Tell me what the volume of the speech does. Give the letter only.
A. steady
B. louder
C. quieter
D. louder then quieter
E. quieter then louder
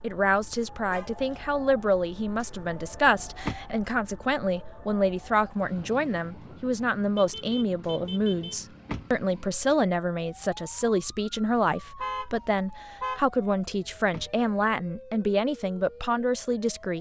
A.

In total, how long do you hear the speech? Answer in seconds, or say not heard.
17 s.